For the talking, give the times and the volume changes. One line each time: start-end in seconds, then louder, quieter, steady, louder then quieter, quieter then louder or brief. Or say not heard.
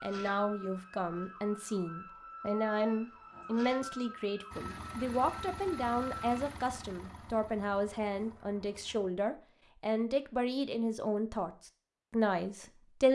0.0-13.0 steady.